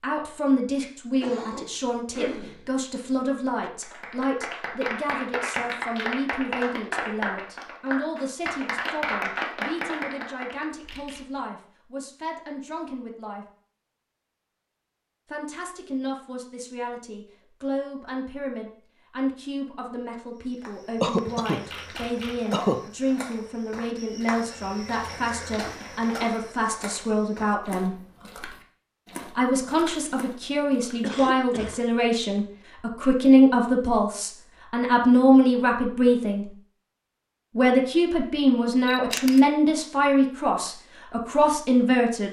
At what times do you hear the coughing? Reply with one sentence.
You can hear the coughing from 1.2 to 3.7 s, from 21.0 to 22.8 s and from 31.0 to 31.8 s.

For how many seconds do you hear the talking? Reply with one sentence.
The talking can be heard for 38 seconds in total.